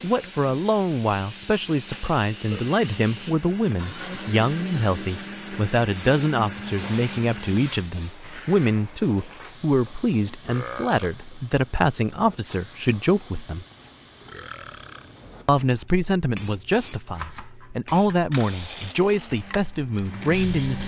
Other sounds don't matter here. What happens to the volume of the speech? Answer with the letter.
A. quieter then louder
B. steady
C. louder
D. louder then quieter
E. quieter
B.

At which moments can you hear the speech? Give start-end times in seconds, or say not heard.
0.0-13.7, 15.4-20.8.